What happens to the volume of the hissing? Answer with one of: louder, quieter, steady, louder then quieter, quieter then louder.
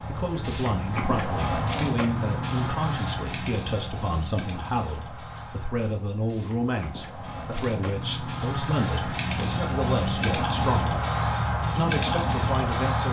quieter then louder.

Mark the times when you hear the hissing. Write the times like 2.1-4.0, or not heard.
0.0-13.0.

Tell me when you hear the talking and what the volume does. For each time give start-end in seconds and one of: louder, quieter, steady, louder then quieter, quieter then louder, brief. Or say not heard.
0.1-11.1 steady
11.8-13.0 brief.